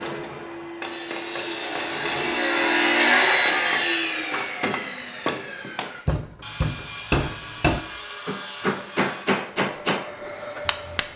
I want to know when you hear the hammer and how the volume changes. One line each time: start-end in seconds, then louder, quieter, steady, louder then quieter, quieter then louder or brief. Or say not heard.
0.0-11.1 louder.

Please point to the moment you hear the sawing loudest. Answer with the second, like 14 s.
3 s.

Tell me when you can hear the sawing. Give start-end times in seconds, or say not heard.
0.8-9.4.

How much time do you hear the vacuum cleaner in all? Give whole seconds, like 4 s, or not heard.
6 s.